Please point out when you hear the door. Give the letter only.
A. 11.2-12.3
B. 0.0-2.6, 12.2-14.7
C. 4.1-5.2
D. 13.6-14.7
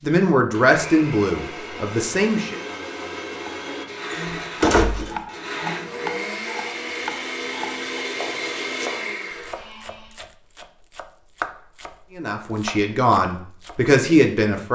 C.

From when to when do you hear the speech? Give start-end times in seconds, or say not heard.
0.0-2.6, 12.2-14.7.